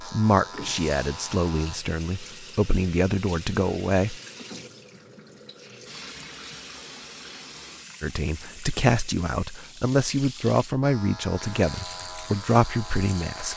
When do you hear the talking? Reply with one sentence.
The talking can be heard from 0.0 to 4.2 s and from 8.0 to 13.5 s.